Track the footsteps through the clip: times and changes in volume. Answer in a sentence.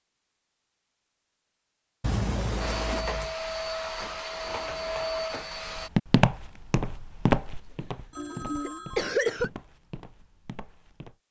The footsteps can be heard from 5.8 to 11.2 s, getting quieter.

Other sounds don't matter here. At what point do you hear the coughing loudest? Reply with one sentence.
The loudest moment of the coughing is at 9 seconds.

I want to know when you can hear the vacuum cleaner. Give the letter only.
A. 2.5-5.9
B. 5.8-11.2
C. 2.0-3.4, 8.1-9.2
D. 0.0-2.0
A.